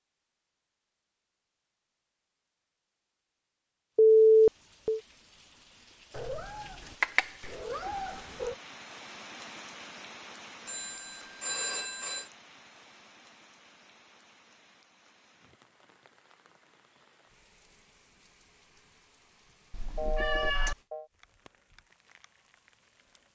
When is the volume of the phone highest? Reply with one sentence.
The loudest moment of the phone is at 4 seconds.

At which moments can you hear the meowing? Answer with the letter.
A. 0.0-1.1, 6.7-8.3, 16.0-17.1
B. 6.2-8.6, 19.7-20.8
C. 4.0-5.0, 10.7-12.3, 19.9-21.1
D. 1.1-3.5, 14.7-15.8
B.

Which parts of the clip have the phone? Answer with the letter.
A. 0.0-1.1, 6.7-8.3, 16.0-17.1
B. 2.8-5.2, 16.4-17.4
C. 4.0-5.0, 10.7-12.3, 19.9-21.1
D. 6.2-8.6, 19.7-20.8
C.